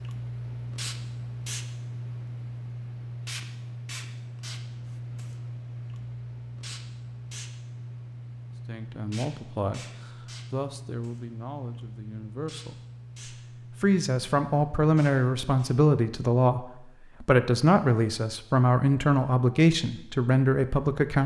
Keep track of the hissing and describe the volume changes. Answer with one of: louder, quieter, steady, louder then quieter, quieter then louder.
quieter.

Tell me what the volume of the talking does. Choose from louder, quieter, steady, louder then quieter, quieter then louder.
louder.